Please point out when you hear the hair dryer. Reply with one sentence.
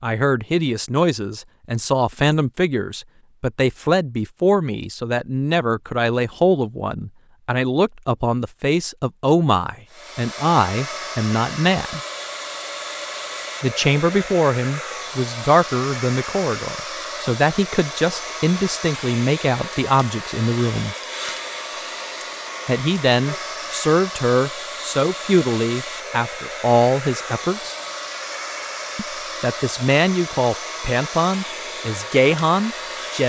The hair dryer can be heard from 9.8 to 33.2 s.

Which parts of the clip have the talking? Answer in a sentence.
You can hear the talking from 0.0 to 12.0 s, from 13.6 to 20.9 s, from 22.6 to 27.8 s and from 28.9 to 33.2 s.